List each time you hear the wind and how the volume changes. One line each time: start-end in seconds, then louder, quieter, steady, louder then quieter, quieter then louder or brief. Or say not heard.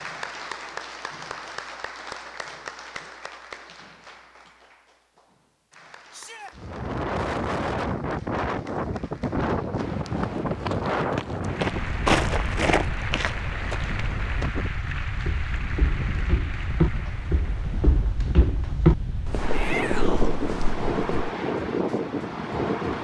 6.5-22.9 quieter then louder.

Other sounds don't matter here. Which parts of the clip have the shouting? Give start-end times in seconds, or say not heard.
6.1-6.5, 19.5-20.4.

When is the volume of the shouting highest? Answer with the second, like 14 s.
20 s.